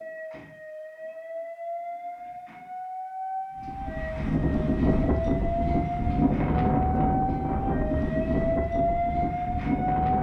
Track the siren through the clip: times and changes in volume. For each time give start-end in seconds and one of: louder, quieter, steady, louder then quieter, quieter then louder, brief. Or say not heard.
0.0-10.1 louder.